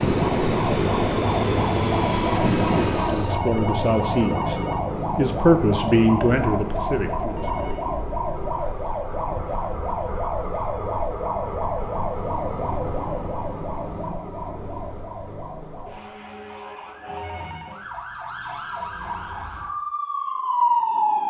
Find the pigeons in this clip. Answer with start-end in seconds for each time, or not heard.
not heard.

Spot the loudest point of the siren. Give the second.
21 s.